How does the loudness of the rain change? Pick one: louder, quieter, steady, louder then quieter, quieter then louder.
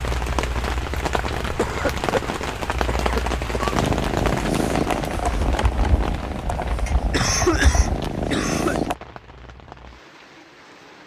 quieter.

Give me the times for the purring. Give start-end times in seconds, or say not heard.
3.7-8.9.